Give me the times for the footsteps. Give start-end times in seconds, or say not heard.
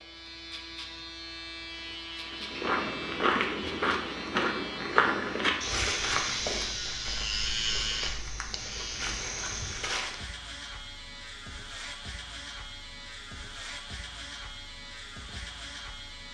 2.2-10.2.